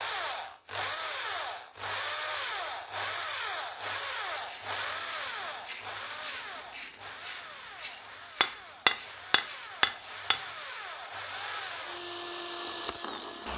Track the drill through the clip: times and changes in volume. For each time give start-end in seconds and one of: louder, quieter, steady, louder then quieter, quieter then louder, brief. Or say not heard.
0.0-13.5 quieter then louder.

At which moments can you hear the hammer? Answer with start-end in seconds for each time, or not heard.
8.4-10.3.